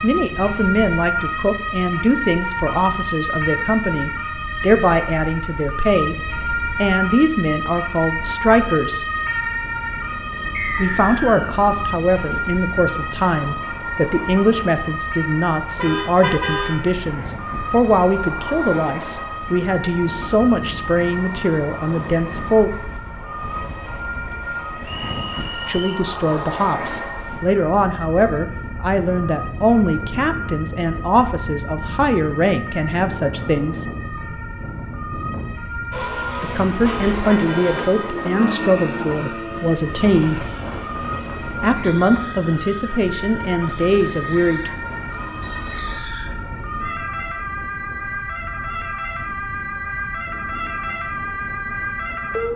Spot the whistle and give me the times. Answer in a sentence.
You can hear the whistle from 10.5 to 11.7 s, from 24.8 to 26.1 s and from 45.4 to 46.2 s.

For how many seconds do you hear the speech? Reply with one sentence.
The speech can be heard for 36 seconds in total.